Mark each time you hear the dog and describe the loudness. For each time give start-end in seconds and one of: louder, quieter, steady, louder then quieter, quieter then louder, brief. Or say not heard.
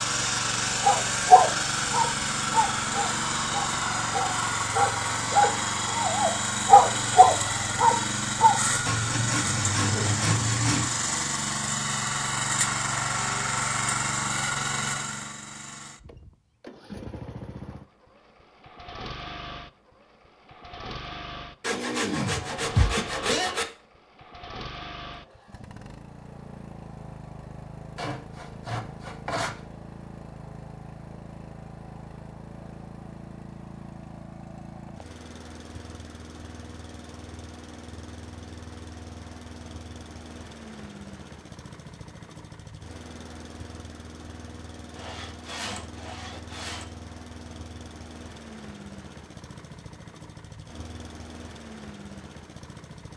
0.8-8.6 quieter then louder.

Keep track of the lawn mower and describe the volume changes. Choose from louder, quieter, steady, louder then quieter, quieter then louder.
quieter.